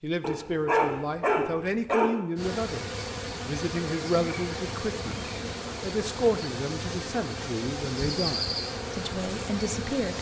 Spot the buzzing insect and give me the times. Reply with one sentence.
You can hear the buzzing insect from 2.4 to 10.1 s.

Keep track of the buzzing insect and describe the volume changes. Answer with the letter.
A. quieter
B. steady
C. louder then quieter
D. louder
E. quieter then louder
B.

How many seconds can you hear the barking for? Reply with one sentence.
The barking can be heard for 2 seconds in total.